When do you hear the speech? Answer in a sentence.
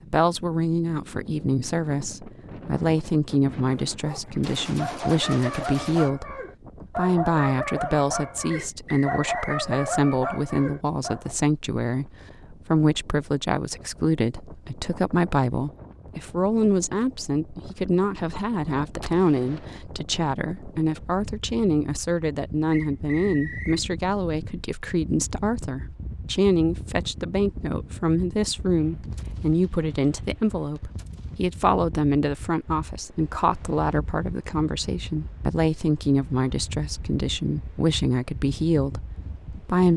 The speech can be heard from 0.1 to 39.9 s.